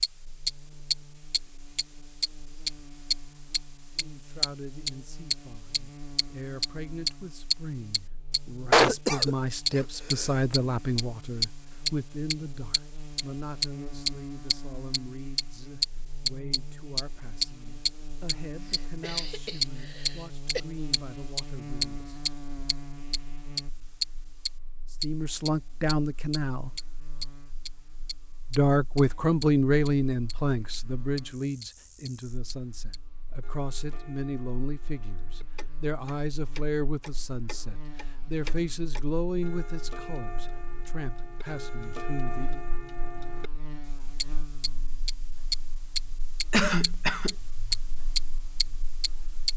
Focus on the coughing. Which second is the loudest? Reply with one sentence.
The loudest moment of the coughing is at 9 seconds.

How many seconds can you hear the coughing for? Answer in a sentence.
The coughing can be heard for 4 seconds in total.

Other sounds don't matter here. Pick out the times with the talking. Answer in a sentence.
The talking can be heard from 4.0 to 22.6 s, from 25.0 to 26.7 s and from 28.5 to 42.6 s.